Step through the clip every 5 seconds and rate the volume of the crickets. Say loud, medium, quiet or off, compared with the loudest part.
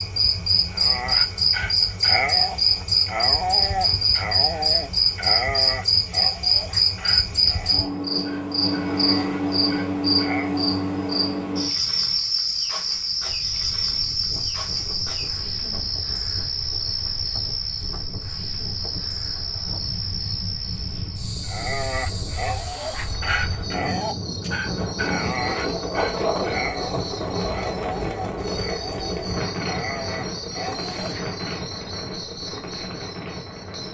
loud, loud, loud, medium, quiet, quiet, quiet.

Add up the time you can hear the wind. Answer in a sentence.
You can hear the wind for 21 seconds altogether.